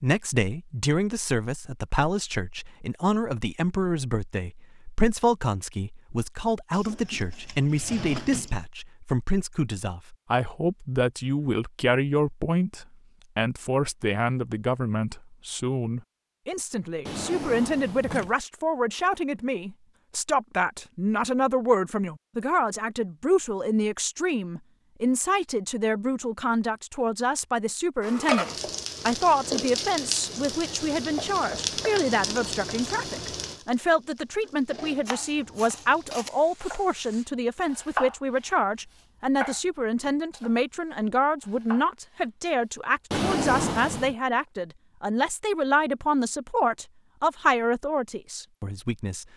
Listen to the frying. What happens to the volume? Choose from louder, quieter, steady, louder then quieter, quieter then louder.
quieter.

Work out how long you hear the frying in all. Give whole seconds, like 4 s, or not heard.
9 s.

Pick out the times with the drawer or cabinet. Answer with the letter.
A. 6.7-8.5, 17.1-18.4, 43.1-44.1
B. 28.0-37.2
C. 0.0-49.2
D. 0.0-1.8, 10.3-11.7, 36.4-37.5
A.